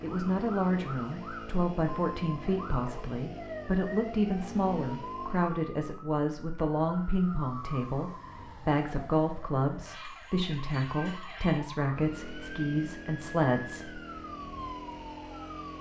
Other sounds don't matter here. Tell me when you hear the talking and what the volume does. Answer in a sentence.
The talking can be heard from 0.0 to 14.0 s, at a steady volume.